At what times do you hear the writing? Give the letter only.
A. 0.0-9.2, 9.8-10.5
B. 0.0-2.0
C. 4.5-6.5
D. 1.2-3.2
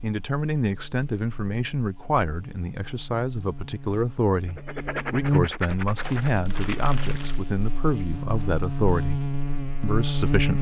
C.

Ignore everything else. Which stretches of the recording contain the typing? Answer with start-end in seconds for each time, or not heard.
not heard.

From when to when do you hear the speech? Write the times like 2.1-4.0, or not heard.
0.0-9.2, 9.8-10.5.